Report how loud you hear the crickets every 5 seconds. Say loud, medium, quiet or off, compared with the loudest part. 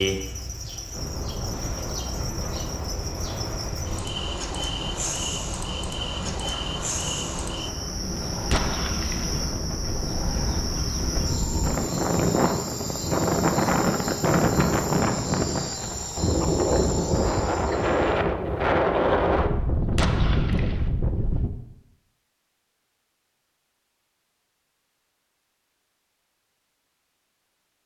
loud, loud, loud, loud, off, off.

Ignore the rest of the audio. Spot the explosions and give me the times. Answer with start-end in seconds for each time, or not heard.
8.5-9.4, 19.9-20.9.